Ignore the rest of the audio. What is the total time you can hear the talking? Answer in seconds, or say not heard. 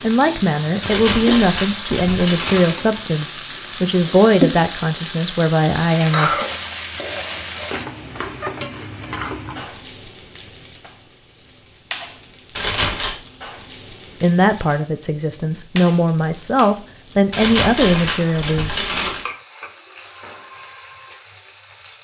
11 s.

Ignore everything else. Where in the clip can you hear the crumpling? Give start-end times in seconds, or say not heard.
0.8-2.8, 12.6-13.2, 17.3-19.2.